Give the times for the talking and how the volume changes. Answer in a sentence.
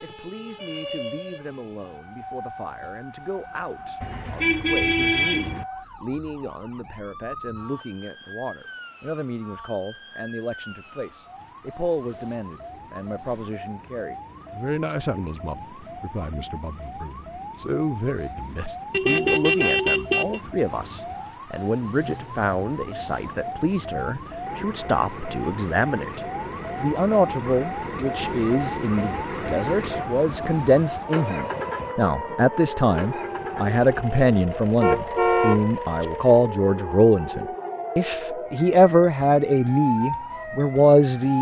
You can hear the talking from 0.0 to 41.3 s, getting louder.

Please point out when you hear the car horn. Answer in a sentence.
The car horn can be heard from 4.0 to 5.7 s, from 18.9 to 20.4 s and from 34.8 to 36.0 s.